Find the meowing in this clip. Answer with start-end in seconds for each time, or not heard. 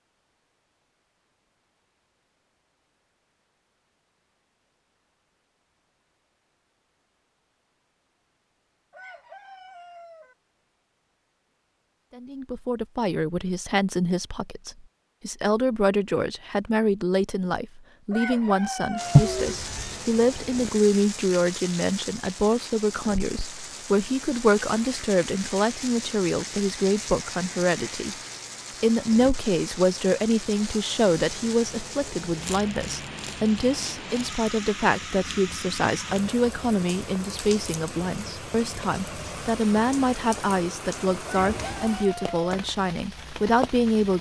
19.1-19.9.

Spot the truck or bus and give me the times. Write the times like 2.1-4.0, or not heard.
not heard.